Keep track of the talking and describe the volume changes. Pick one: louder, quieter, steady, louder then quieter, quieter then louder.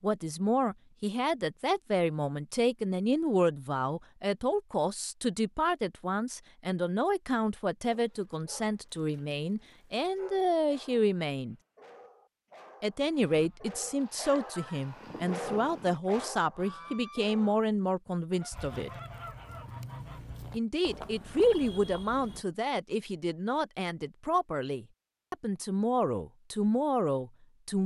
steady.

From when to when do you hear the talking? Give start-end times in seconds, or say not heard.
0.0-11.6, 12.8-18.9, 20.5-27.8.